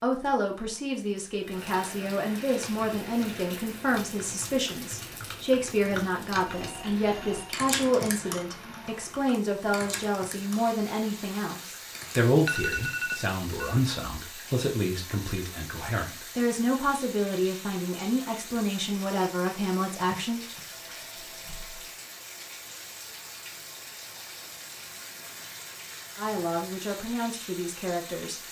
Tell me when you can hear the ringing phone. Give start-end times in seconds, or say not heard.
6.5-7.5, 12.4-13.8, 19.9-21.9.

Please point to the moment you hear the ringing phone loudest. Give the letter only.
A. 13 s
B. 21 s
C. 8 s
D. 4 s
A.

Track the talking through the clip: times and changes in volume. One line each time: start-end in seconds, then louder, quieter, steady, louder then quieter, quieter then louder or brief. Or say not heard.
0.0-20.4 steady
26.1-28.4 brief.